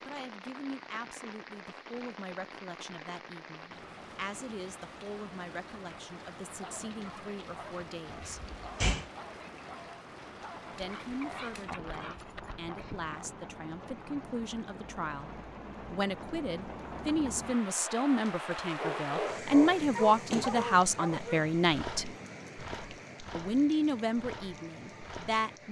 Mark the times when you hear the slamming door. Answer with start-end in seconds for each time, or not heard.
8.1-9.1.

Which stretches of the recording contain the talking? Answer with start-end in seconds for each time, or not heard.
0.0-8.5, 10.7-22.1, 23.4-25.6.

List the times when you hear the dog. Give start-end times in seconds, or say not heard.
6.5-13.2, 18.8-25.4.